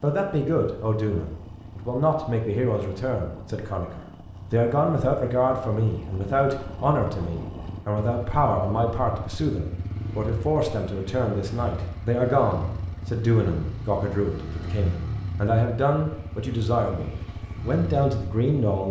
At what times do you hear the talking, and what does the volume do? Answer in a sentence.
You can hear the talking from 0.0 to 18.8 s, at a steady volume.